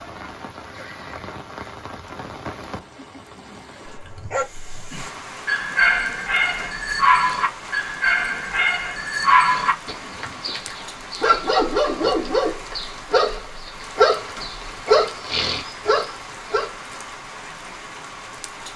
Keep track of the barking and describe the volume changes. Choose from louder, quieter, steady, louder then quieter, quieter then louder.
steady.